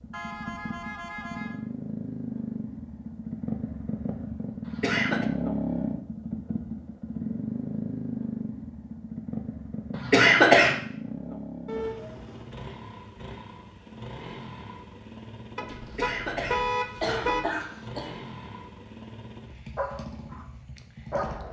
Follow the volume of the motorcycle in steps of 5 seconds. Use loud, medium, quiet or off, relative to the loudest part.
loud, loud, medium, medium, medium.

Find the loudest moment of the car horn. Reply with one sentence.
The loudest moment of the car horn is at 17 seconds.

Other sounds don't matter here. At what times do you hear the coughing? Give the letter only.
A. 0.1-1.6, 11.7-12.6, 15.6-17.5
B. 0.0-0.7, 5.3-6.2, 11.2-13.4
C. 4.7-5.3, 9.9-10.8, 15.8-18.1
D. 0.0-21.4
C.